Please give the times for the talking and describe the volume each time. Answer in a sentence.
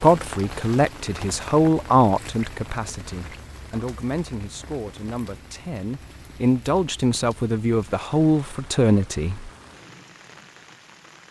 You can hear the talking from 0.0 to 9.5 s, getting quieter then louder.